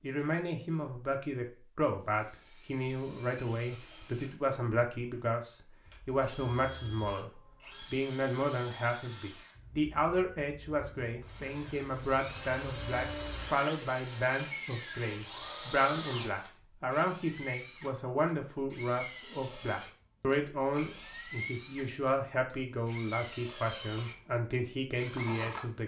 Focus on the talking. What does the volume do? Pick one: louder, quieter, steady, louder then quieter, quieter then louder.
steady.